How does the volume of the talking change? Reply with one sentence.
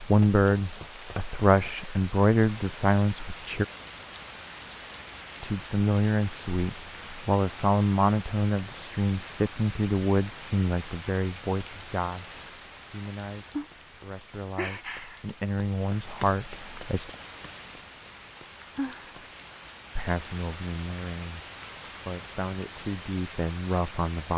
The volume of the talking goes down.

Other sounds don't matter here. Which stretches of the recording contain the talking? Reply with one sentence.
The talking can be heard from 0.0 to 3.6 s, from 5.4 to 17.1 s and from 19.9 to 24.3 s.